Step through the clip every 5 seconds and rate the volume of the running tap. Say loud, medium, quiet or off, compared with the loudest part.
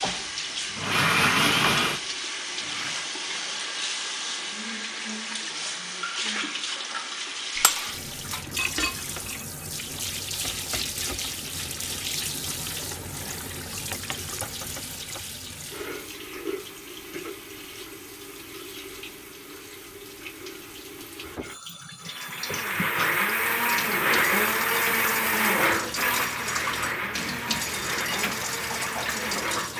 loud, loud, loud, medium, medium, loud.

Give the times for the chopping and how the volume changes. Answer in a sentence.
The chopping can't be heard in this clip.